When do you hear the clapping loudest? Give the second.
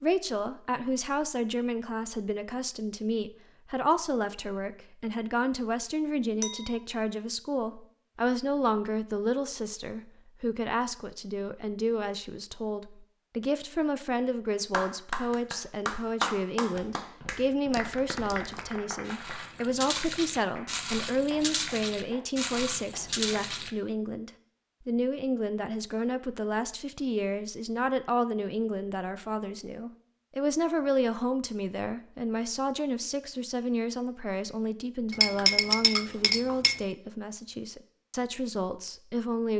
16 s.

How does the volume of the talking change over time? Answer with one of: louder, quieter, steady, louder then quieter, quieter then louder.
steady.